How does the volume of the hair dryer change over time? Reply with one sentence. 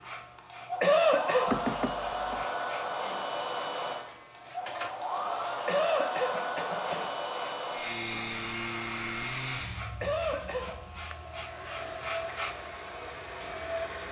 The loudness of the hair dryer goes down.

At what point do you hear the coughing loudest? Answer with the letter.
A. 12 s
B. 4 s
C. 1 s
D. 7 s
C.